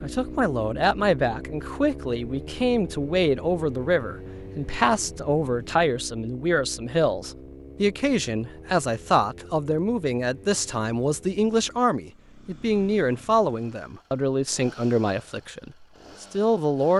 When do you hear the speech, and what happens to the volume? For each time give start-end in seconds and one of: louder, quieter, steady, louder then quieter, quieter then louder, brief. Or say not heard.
0.0-16.9 steady.